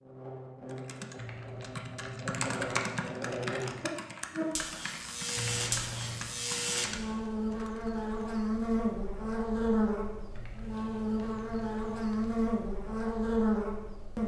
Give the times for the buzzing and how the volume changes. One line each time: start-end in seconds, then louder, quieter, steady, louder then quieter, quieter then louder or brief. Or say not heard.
0.0-14.2 louder.